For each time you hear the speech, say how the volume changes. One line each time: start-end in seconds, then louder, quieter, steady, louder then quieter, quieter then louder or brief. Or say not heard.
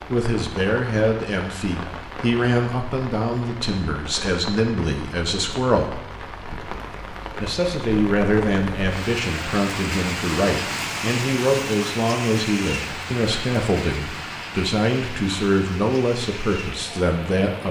0.1-6.0 steady
7.4-17.6 steady.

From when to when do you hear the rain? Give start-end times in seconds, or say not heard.
0.0-17.6.